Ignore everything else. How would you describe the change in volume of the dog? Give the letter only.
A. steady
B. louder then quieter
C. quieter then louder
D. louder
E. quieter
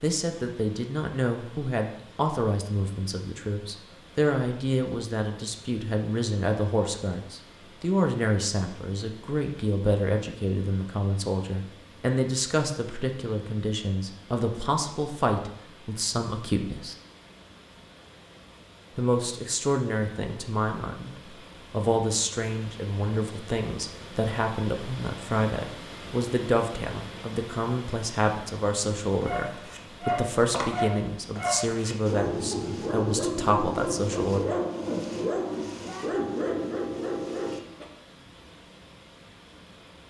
A.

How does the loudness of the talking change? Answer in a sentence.
The loudness of the talking stays about the same.